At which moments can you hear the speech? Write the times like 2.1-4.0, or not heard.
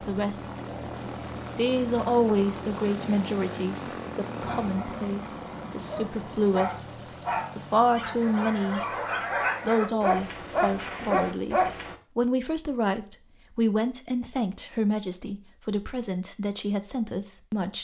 0.1-0.5, 1.6-6.9, 7.5-8.8, 9.7-17.8.